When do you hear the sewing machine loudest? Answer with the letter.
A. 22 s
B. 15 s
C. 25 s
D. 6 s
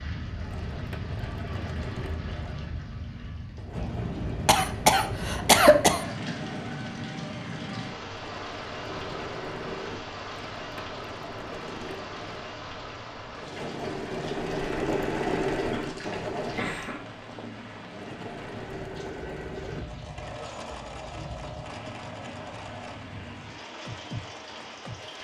B.